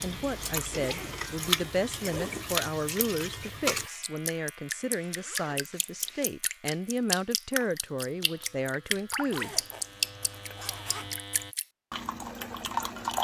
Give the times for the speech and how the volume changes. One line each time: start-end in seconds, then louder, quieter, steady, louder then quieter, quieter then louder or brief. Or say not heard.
0.0-9.6 steady.